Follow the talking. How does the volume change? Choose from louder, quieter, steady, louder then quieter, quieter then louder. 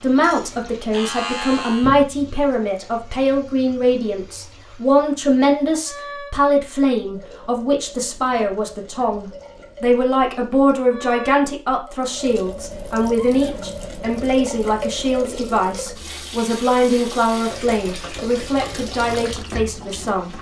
steady.